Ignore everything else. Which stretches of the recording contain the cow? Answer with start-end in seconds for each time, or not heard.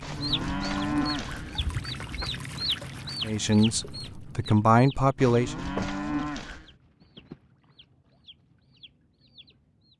0.0-1.6, 5.2-6.7.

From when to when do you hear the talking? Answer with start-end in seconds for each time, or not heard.
3.2-5.5.